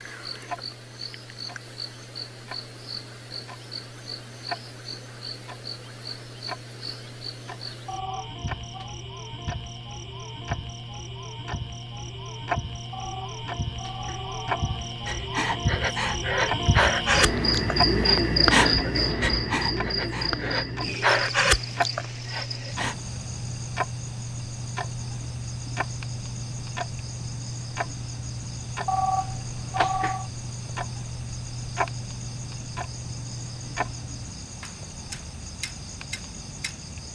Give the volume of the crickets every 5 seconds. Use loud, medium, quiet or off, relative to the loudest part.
quiet, quiet, quiet, loud, medium, quiet, quiet, quiet.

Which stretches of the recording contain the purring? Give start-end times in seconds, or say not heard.
not heard.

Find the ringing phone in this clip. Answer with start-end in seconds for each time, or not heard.
7.8-8.9, 12.9-14.8, 28.9-30.3.